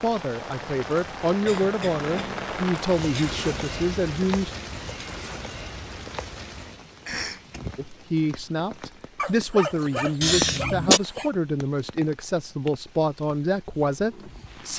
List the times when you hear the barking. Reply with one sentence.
You can hear the barking from 9.2 to 11.3 s.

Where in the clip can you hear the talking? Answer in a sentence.
The talking can be heard from 0.0 to 4.5 s and from 7.8 to 14.7 s.